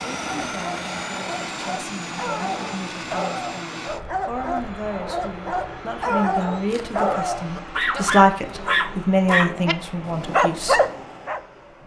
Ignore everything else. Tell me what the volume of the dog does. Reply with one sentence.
The volume of the dog goes up.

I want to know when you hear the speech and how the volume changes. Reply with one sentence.
You can hear the speech from 0.0 to 10.8 s, getting louder.